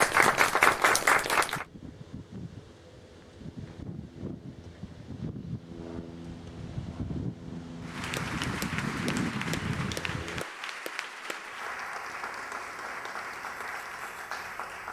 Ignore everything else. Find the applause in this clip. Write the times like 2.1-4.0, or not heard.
0.0-1.6, 7.8-14.8.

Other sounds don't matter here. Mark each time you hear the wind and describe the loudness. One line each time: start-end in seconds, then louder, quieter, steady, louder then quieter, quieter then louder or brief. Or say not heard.
0.0-10.4 louder.